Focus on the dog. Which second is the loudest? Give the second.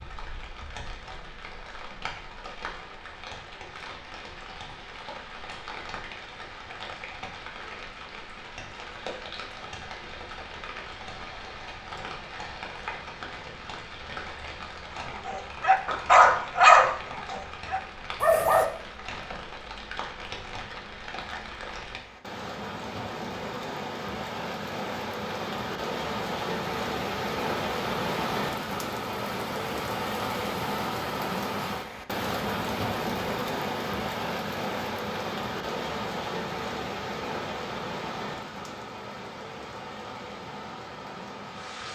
17 s.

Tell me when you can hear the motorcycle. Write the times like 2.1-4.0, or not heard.
not heard.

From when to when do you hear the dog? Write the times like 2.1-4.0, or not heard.
15.1-18.6.